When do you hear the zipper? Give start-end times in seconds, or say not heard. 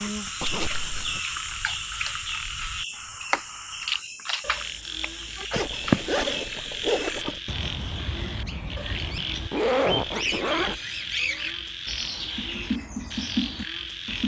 0.4-1.2, 5.5-7.4, 9.5-10.8.